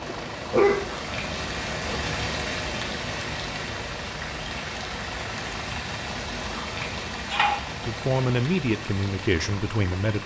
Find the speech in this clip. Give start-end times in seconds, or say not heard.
7.8-10.2.